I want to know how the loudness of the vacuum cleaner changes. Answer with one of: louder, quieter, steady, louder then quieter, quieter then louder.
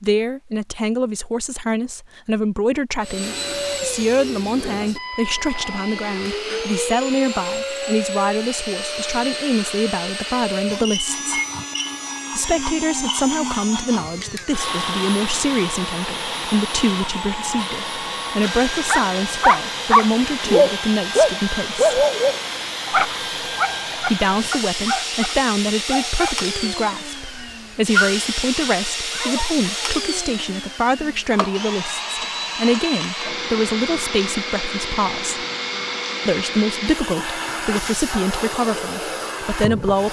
steady.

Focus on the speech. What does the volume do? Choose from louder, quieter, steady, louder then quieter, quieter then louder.
steady.